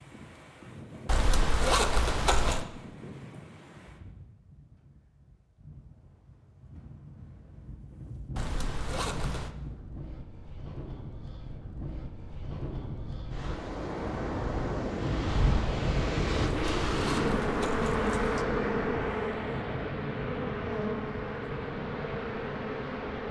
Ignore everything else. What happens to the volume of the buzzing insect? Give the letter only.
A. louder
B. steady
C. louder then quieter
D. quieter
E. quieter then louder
D.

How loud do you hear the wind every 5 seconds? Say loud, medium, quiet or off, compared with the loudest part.
quiet, quiet, medium, loud, medium.